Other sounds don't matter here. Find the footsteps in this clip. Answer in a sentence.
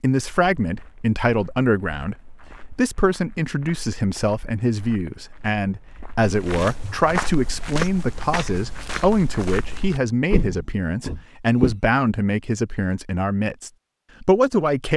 The footsteps can be heard from 0.1 to 11.8 s.